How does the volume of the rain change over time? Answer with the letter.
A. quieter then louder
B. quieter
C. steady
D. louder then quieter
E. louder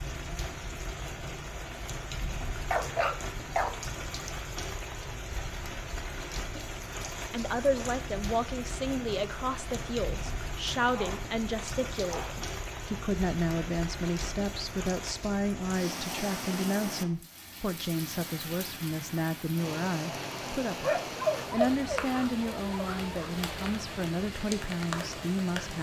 C.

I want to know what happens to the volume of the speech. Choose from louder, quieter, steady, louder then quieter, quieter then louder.
steady.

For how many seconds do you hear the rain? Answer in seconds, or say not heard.
26 s.